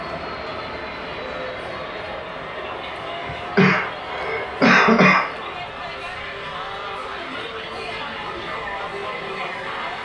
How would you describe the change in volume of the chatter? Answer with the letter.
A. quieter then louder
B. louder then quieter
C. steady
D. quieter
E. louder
E.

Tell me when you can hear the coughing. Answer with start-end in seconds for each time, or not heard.
3.0-5.3.